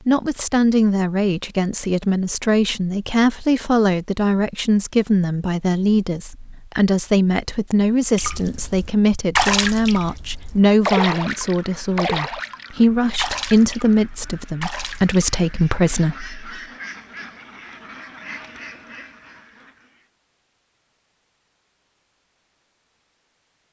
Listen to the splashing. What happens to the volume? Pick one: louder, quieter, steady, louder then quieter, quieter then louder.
quieter.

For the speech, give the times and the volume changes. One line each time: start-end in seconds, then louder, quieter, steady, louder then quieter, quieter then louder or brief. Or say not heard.
0.1-16.4 steady.